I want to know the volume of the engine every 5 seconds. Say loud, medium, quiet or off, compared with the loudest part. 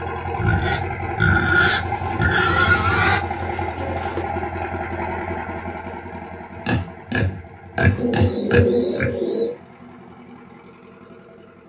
loud, medium, quiet.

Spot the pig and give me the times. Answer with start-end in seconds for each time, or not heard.
0.3-3.2, 6.6-9.2.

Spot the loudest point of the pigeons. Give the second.
9 s.